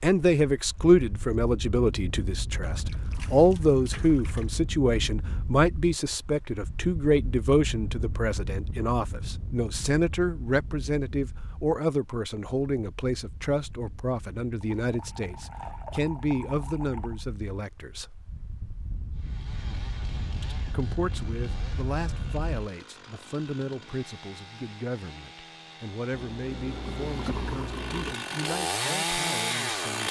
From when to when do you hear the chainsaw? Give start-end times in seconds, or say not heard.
19.1-30.0.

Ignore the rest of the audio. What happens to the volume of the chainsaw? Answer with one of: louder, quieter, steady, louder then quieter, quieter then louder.
louder.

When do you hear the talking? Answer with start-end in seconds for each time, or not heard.
0.0-18.1, 20.4-30.0.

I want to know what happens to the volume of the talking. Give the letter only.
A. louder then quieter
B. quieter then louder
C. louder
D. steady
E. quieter
E.